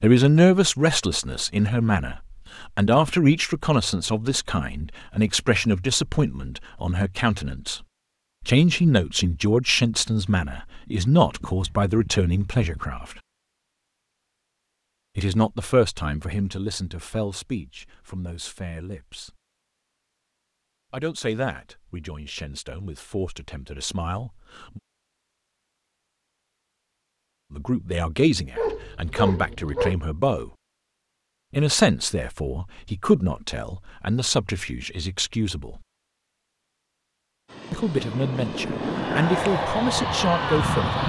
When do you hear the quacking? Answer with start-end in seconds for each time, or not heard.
not heard.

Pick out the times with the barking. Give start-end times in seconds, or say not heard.
11.2-12.9, 28.6-29.9.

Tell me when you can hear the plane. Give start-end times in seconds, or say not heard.
37.5-41.0.